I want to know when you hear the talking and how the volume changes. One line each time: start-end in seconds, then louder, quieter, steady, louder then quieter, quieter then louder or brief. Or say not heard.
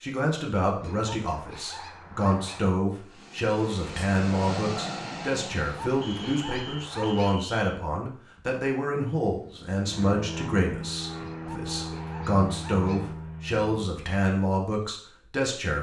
0.0-15.7 steady.